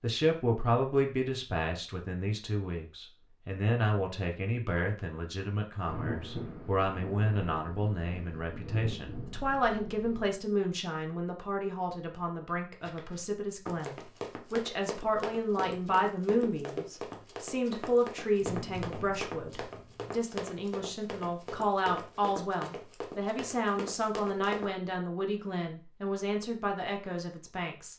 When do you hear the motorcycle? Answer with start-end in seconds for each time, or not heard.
not heard.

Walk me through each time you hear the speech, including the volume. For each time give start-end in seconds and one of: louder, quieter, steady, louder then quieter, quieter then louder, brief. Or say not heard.
0.0-27.9 steady.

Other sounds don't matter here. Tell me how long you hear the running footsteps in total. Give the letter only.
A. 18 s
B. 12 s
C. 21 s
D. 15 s
B.